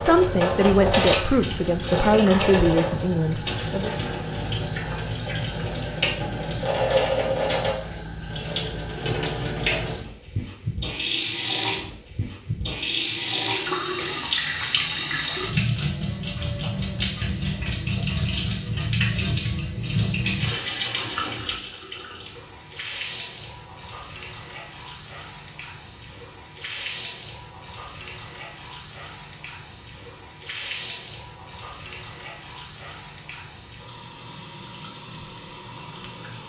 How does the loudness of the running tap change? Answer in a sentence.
The loudness of the running tap goes down.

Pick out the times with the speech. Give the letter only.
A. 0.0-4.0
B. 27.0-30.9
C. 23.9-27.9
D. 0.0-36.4
A.